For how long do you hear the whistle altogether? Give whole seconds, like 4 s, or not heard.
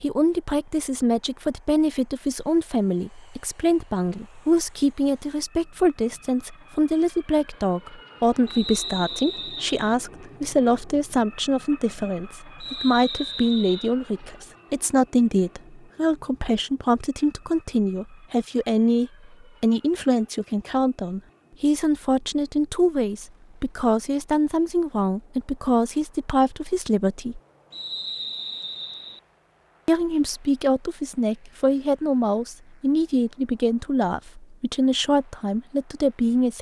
4 s.